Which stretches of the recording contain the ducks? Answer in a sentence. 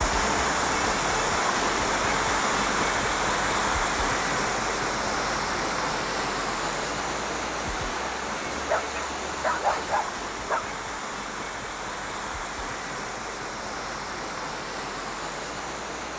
You can't hear the ducks here.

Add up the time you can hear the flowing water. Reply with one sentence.
The flowing water can be heard for 16 seconds in total.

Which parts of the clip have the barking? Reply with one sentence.
You can hear the barking from 8.5 to 10.7 s.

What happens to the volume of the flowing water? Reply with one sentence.
The volume of the flowing water goes down.